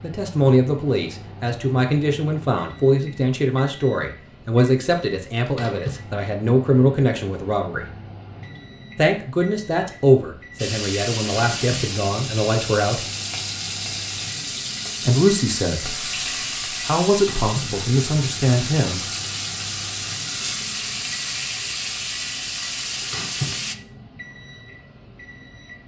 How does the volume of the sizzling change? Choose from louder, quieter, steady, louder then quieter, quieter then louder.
steady.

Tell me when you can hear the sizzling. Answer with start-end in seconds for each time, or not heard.
10.6-23.8.